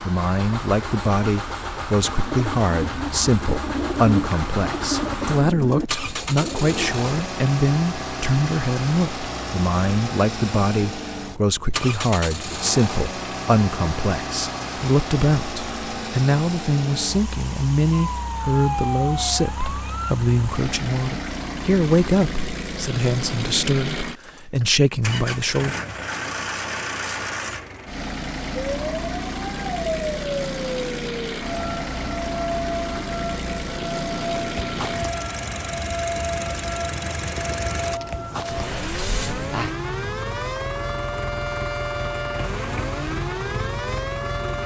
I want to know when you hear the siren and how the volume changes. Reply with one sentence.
You can hear the siren briefly from 17.9 to 20.1 s; and from 28.6 to 44.6 s, at a steady volume.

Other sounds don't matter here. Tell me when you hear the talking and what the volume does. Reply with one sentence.
You can hear the talking from 0.1 to 25.8 s, at a steady volume.